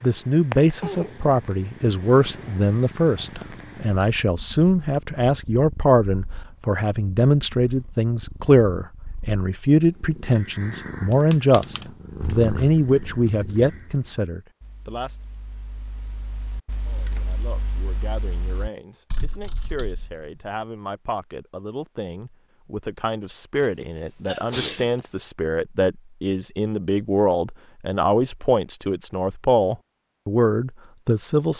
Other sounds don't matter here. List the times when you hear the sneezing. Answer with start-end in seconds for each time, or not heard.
23.6-25.0.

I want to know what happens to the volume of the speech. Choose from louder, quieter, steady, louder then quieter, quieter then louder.
quieter then louder.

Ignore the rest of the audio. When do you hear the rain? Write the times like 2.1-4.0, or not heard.
not heard.